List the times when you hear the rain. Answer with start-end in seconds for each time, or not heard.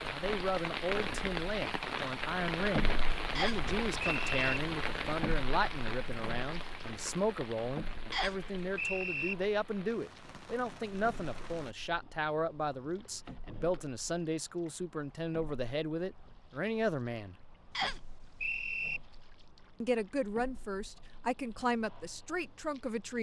0.0-11.8.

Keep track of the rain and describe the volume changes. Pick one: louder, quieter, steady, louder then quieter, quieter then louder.
quieter.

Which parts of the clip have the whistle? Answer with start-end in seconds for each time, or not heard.
3.4-4.4, 8.1-9.3, 17.8-19.0.